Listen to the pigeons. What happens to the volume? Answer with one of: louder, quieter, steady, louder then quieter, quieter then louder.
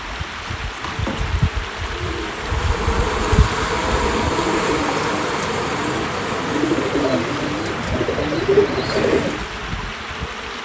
louder.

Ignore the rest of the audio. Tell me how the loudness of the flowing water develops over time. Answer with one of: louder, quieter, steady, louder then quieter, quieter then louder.
steady.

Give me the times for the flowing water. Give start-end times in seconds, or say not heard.
0.0-10.6.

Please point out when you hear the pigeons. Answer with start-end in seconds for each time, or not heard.
1.9-9.4.